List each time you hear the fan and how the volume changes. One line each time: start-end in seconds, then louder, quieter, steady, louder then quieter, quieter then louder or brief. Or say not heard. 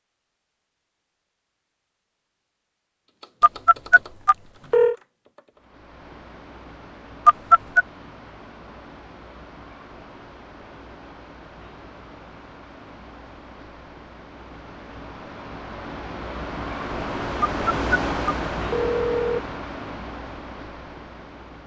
5.5-21.6 louder.